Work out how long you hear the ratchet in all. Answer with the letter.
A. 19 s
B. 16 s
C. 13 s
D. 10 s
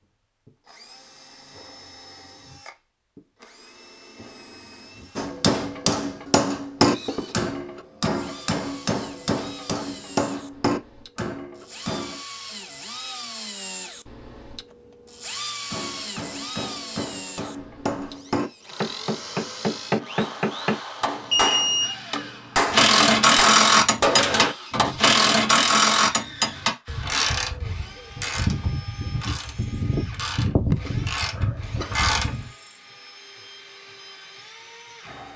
D.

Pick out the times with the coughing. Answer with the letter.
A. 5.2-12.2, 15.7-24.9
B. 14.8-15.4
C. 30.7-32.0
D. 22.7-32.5
C.